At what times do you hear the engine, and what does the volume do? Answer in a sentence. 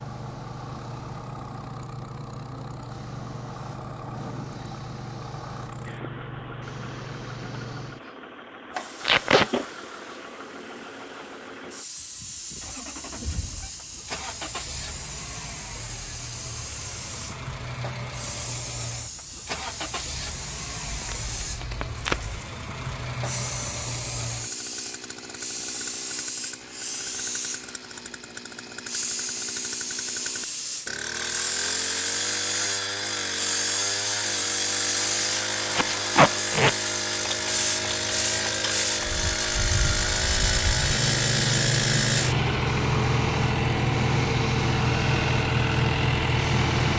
The engine can be heard from 0.0 to 46.9 s, getting louder.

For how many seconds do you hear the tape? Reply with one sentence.
The tape can be heard for 3 seconds in total.